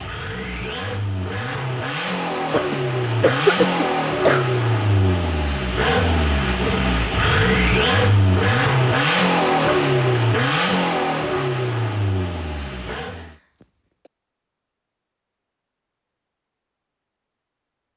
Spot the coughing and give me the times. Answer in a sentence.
You can hear the coughing from 2.5 to 4.6 s and from 12.8 to 14.1 s.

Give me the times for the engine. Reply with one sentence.
The engine can be heard from 0.0 to 13.4 s.